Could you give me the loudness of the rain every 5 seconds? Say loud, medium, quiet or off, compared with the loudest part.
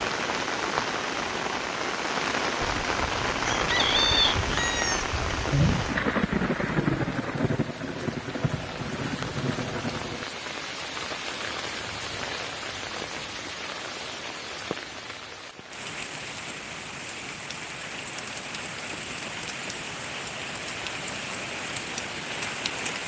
loud, loud, medium, medium, medium.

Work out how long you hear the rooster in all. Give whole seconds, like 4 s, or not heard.
3 s.